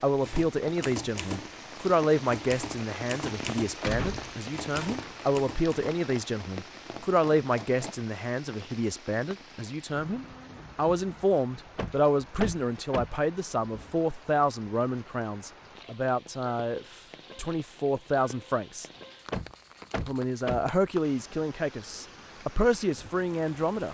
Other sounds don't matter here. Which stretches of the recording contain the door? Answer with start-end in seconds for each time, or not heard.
3.8-5.2, 11.8-13.2, 19.3-20.7.